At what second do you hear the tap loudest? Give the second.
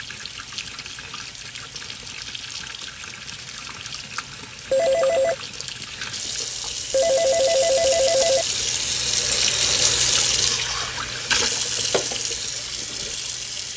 10 s.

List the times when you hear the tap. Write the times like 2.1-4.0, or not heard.
0.0-13.7.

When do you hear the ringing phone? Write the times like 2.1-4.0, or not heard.
4.7-5.3, 6.9-8.4.